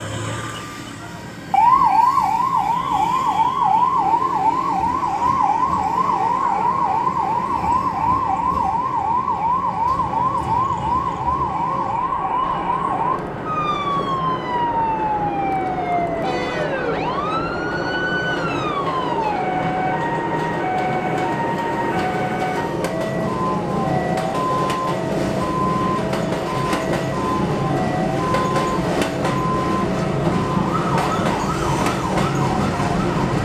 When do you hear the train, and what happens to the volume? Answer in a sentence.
The train can be heard from 0.0 to 33.3 s, getting louder.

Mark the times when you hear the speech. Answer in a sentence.
You can't hear the speech here.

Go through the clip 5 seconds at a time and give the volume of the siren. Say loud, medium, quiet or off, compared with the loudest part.
loud, loud, loud, medium, medium, medium, medium.